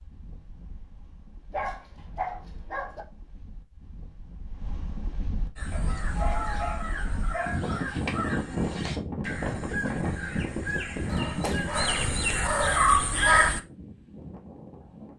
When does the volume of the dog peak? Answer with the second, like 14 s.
13 s.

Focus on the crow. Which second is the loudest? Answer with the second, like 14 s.
13 s.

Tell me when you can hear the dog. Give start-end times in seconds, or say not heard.
1.5-3.0, 5.7-7.6, 11.1-13.5.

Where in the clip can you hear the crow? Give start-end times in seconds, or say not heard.
5.5-13.6.